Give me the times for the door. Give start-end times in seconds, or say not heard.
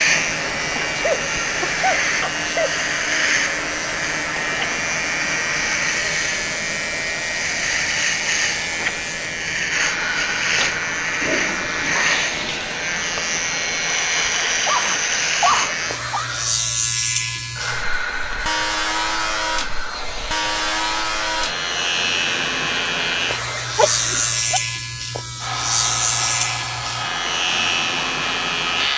not heard.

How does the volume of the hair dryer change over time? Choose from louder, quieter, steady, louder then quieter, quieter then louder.
steady.